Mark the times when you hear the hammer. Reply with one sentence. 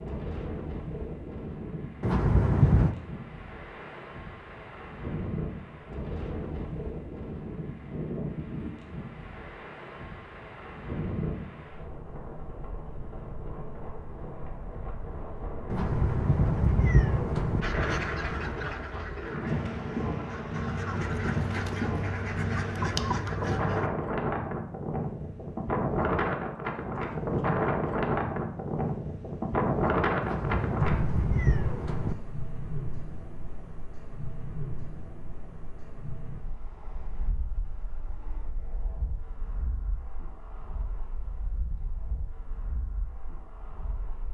You can't hear the hammer here.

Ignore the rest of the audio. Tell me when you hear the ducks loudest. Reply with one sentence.
The volume of the ducks peaks at 23 seconds.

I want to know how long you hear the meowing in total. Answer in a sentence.
The meowing can be heard for 5 seconds in total.